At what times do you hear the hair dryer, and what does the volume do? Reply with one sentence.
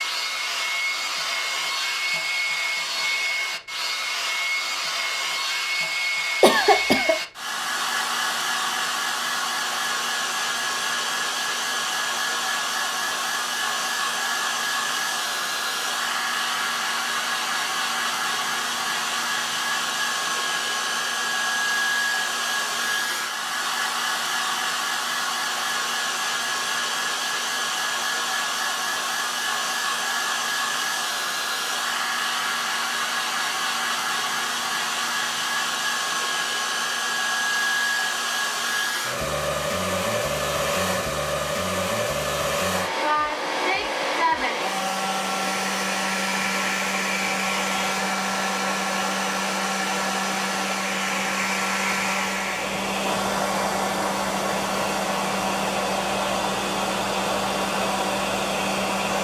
The hair dryer can be heard from 0.0 to 59.1 s, at a steady volume.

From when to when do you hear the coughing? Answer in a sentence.
The coughing can be heard from 6.4 to 7.2 s.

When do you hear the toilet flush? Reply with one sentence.
The toilet flush can't be heard in this clip.